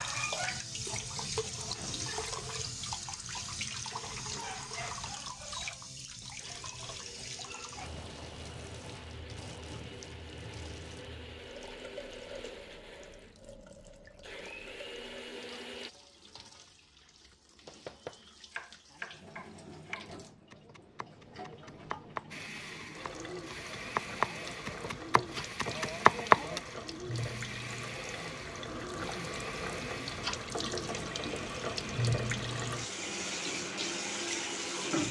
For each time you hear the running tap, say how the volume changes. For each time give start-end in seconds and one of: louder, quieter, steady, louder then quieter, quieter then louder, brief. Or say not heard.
0.0-35.0 quieter then louder.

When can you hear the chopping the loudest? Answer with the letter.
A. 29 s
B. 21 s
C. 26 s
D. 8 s
C.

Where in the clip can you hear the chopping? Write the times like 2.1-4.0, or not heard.
17.6-26.6.